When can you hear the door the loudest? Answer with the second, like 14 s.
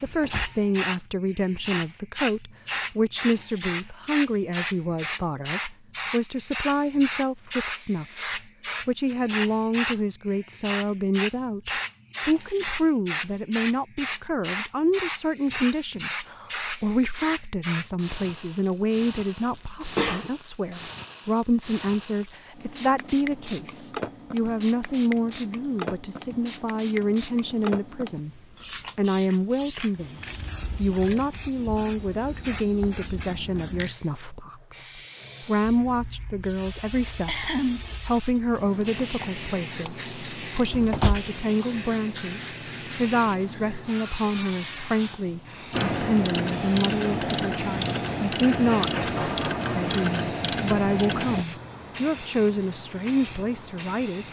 41 s.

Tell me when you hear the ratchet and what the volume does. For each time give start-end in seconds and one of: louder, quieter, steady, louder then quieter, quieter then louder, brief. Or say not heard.
45.7-51.5 steady.